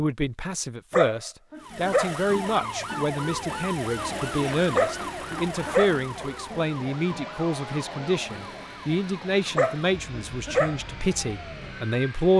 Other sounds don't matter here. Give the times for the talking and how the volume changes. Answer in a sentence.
The talking can be heard from 0.0 to 12.3 s, at a steady volume.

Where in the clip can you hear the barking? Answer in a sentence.
The barking can be heard from 0.9 to 2.1 s, from 4.8 to 6.0 s and from 9.6 to 10.8 s.